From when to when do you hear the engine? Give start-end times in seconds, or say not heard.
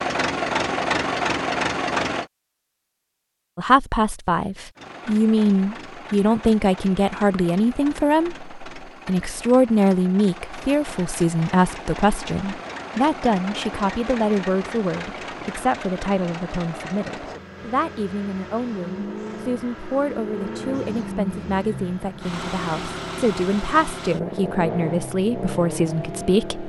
0.0-2.3, 4.8-26.6.